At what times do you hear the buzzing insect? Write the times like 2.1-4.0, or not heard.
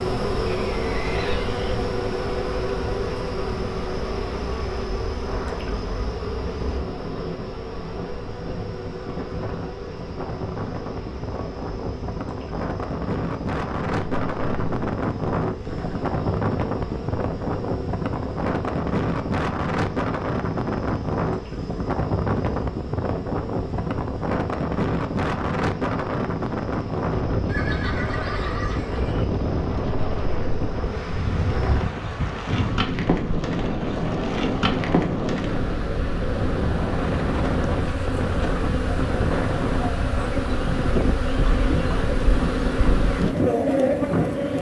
0.0-44.5.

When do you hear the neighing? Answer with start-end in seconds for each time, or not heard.
0.5-1.9, 27.4-29.2.